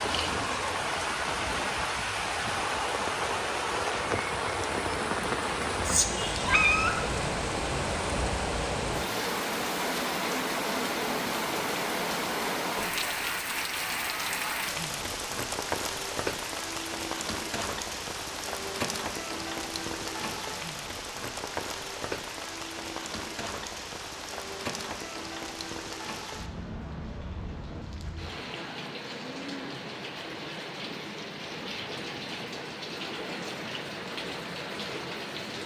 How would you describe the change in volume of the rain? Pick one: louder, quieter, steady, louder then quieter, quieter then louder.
quieter.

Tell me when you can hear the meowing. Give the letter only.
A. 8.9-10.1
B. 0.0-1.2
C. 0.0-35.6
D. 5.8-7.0
D.